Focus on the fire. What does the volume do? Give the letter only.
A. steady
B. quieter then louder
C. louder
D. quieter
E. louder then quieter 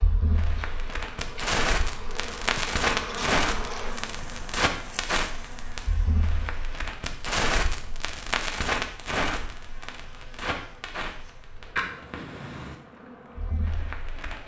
D.